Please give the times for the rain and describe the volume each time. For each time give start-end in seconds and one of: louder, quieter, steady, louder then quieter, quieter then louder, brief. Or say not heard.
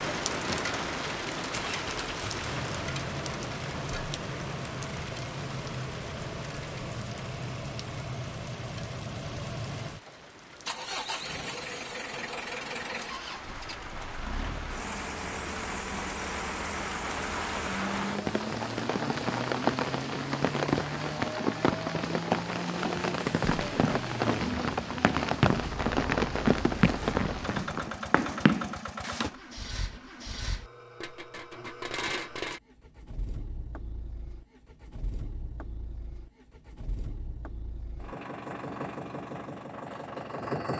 0.0-27.9 quieter then louder.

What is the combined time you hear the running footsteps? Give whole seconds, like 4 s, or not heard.
6 s.